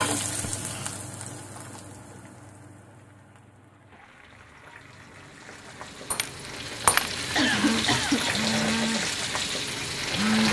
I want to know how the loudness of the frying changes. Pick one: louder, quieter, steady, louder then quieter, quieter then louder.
quieter then louder.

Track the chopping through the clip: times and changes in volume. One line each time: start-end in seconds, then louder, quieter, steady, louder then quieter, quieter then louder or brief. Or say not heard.
not heard.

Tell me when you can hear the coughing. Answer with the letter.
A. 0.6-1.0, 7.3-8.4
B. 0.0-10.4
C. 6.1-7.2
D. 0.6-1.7
A.